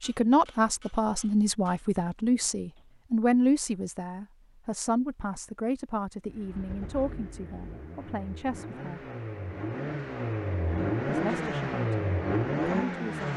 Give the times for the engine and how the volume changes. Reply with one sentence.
You can hear the engine from 6.2 to 13.3 s, getting louder.